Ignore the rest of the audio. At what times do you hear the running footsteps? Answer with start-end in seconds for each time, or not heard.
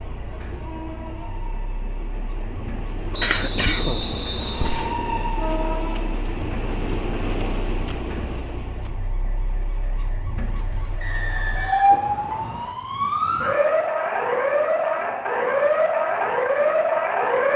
not heard.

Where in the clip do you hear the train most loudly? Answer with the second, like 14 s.
5 s.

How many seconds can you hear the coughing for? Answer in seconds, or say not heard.
2 s.